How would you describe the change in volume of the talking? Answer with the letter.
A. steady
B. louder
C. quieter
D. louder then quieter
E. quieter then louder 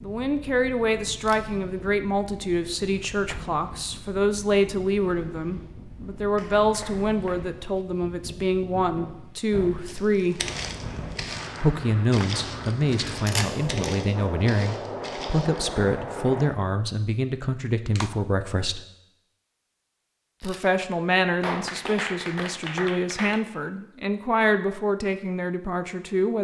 A.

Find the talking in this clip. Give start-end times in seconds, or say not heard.
0.0-10.4, 11.6-18.8, 20.4-26.3.